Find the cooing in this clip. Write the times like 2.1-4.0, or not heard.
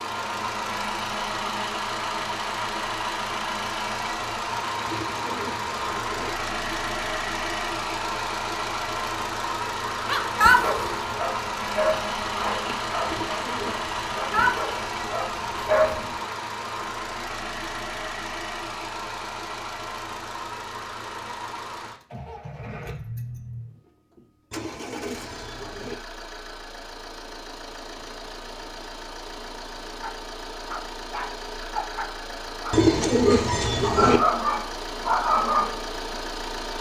4.8-6.3, 13.1-14.5, 24.5-25.9, 32.7-34.2.